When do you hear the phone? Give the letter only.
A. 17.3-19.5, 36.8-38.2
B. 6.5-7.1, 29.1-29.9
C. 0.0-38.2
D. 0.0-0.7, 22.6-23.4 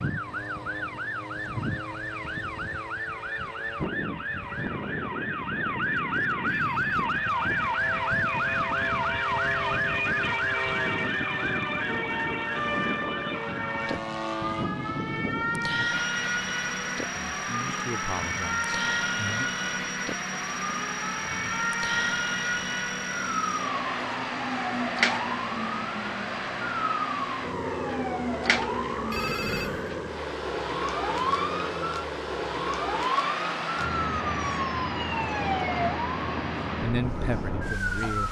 B.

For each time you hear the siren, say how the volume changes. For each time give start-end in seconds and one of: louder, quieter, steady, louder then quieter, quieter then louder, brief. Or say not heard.
0.0-38.2 steady.